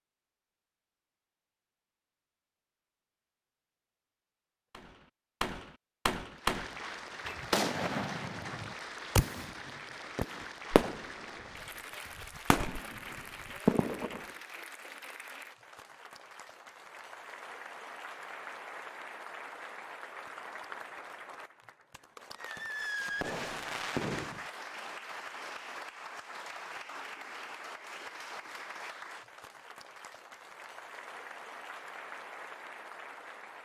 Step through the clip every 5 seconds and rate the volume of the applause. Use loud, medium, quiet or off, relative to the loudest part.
off, loud, loud, loud, loud, loud, loud.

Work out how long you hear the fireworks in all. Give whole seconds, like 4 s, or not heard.
11 s.